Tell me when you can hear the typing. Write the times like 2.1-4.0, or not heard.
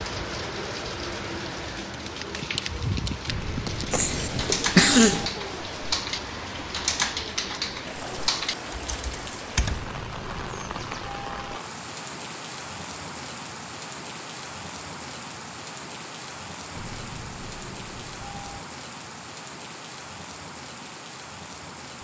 1.9-9.9.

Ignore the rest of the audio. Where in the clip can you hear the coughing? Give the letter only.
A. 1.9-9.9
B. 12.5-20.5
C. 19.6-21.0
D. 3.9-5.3
D.